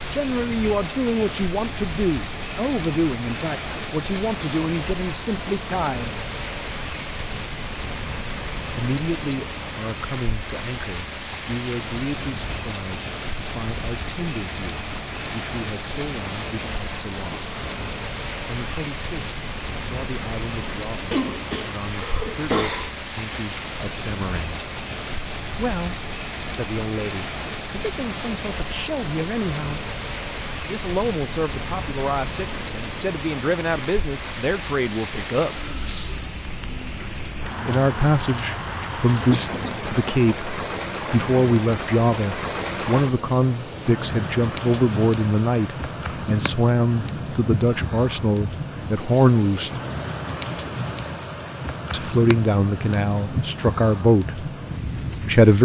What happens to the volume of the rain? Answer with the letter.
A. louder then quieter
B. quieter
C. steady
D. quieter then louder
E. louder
C.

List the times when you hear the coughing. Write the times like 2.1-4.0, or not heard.
21.1-22.9, 39.1-39.7.